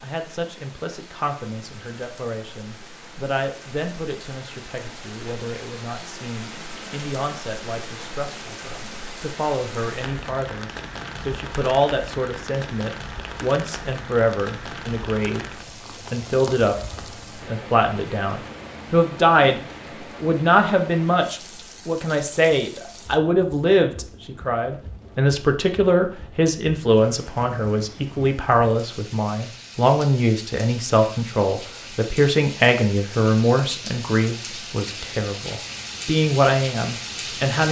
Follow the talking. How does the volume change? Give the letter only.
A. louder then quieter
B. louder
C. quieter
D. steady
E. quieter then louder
B.